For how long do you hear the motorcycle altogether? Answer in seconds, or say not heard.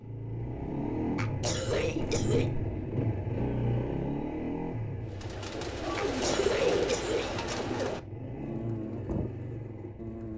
10 s.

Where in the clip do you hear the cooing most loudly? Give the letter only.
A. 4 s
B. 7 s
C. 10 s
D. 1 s
B.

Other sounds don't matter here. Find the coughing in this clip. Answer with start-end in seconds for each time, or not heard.
1.1-2.5, 6.0-7.5.